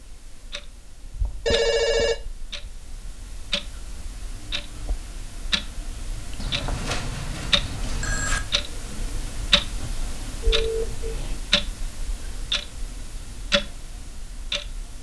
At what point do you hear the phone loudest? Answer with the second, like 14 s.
2 s.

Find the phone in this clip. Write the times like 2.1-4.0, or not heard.
1.4-2.1, 6.3-8.4, 10.4-11.2.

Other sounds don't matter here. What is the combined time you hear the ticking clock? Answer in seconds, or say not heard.
15 s.